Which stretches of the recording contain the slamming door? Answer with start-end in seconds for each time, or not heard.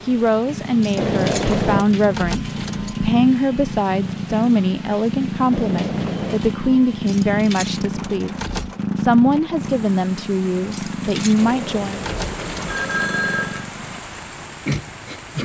not heard.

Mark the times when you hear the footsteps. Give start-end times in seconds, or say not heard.
not heard.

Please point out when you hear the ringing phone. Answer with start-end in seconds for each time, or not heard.
0.9-1.9, 5.5-6.4, 11.3-13.7.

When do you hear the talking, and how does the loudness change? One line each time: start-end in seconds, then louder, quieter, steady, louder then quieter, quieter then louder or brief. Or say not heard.
0.1-12.0 steady.